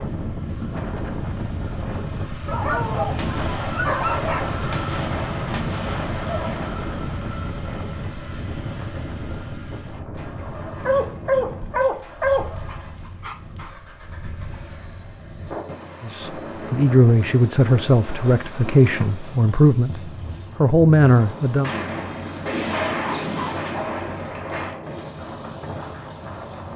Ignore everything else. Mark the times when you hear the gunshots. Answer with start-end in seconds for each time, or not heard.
3.1-6.7, 21.6-24.8.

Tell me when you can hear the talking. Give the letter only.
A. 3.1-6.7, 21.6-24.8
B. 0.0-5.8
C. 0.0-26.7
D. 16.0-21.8
D.